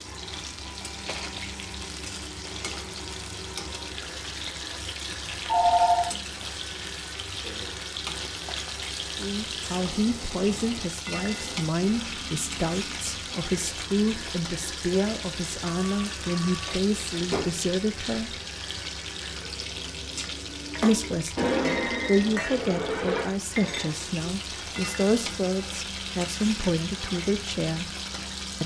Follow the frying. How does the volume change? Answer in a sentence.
The loudness of the frying stays about the same.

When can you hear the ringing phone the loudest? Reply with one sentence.
The volume of the ringing phone peaks at 6 seconds.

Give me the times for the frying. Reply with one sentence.
The frying can be heard from 0.0 to 28.6 s.